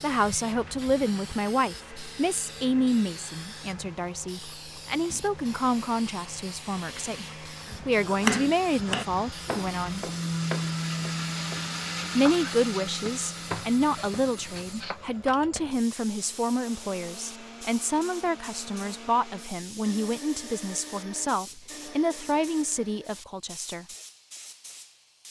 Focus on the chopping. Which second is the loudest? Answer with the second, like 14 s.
8 s.